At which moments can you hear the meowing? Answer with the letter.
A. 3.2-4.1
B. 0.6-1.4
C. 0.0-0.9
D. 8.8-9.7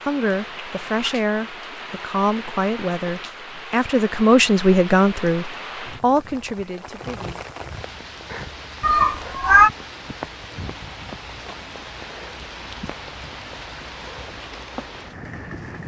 D.